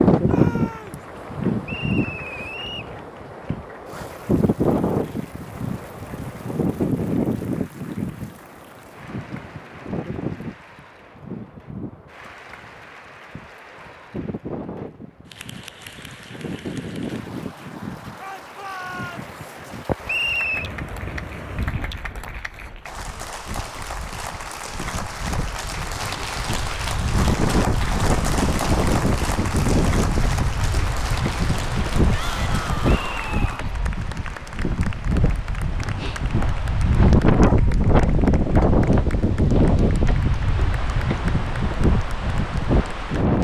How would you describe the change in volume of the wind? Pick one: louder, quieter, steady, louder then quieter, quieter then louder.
quieter then louder.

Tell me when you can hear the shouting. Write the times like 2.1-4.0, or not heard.
0.2-1.0, 18.1-19.3, 32.1-33.7.